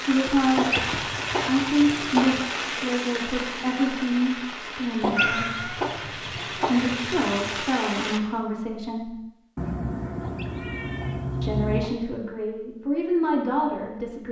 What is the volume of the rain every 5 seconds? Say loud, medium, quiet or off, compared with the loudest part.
loud, loud, off.